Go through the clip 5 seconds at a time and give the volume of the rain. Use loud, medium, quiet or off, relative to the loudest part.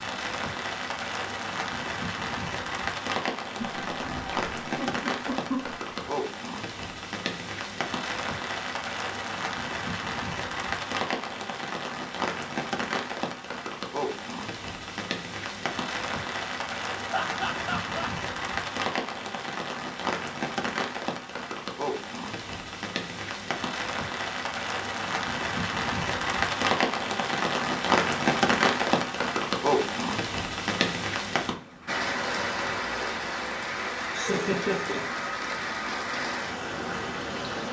medium, medium, medium, medium, medium, loud, medium, medium.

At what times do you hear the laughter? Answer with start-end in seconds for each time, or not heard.
3.5-6.1, 17.1-18.1, 33.5-35.5.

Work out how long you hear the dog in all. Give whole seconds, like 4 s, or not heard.
not heard.